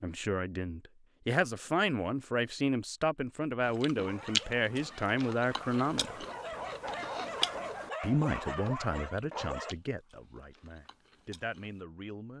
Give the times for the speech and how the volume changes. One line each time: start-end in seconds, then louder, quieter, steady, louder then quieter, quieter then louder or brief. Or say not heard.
0.0-6.2 steady
8.0-12.3 quieter then louder.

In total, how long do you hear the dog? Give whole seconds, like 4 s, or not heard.
6 s.